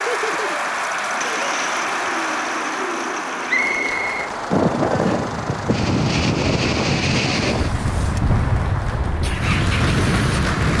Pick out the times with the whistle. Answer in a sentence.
You can hear the whistle from 3.5 to 4.3 s.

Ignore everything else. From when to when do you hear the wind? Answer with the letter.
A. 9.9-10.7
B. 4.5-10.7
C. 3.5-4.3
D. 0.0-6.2
B.